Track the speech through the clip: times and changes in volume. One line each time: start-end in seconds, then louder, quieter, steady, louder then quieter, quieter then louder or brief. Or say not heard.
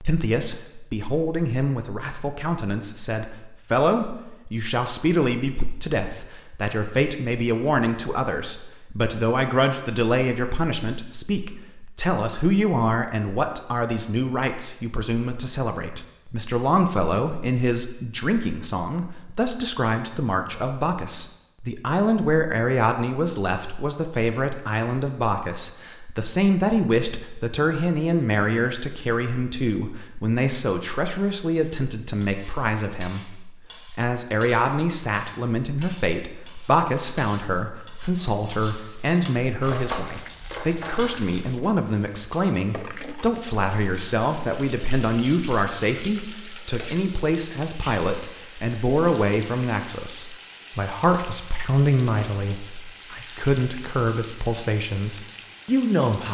0.0-56.2 steady.